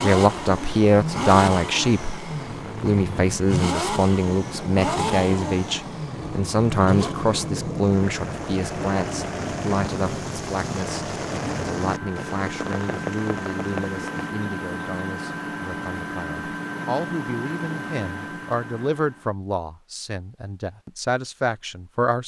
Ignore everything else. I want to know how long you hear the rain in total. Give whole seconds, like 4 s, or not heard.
14 s.